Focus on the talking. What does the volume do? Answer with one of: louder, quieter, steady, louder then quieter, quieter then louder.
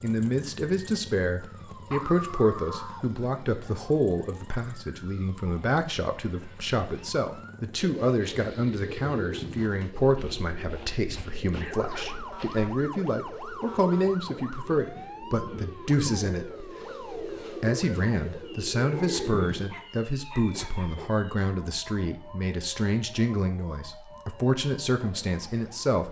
steady.